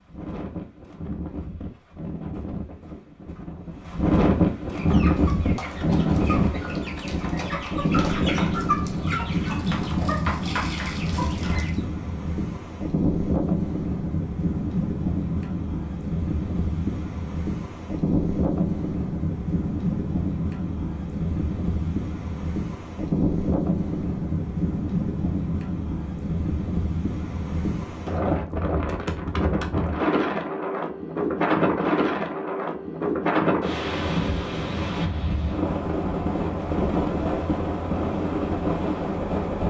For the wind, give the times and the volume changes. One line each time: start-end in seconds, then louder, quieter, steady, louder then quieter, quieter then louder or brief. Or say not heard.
0.0-39.6 steady.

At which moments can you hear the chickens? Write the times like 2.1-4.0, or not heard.
4.7-11.8.